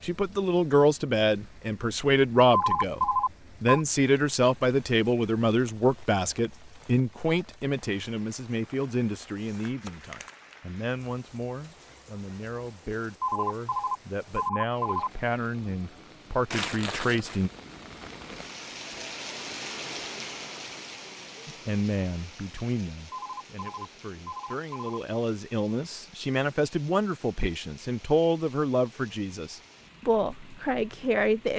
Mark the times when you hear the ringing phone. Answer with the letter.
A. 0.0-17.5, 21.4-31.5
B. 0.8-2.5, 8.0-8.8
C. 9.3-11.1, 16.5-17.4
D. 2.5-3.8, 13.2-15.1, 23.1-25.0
D.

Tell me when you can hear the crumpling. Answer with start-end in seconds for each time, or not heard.
9.3-11.1, 16.5-17.4.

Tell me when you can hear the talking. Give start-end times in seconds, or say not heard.
0.0-17.5, 21.4-31.5.